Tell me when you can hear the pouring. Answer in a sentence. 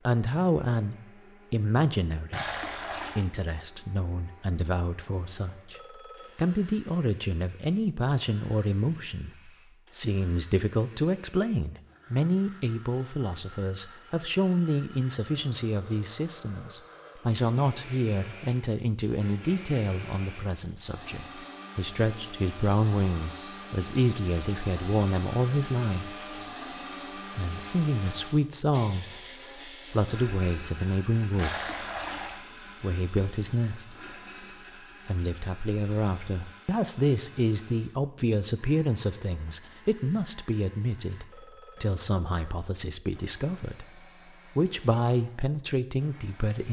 You can hear the pouring from 2.3 to 3.3 s and from 31.4 to 32.4 s.